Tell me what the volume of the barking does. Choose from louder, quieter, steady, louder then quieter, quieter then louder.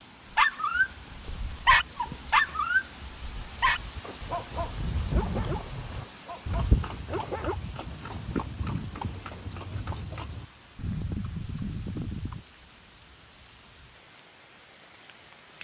quieter.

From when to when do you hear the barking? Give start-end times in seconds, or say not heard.
0.3-7.5.